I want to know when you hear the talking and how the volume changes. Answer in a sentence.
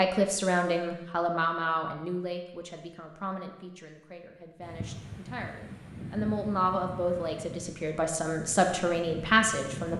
The talking can be heard from 0.0 to 9.9 s, getting quieter then louder.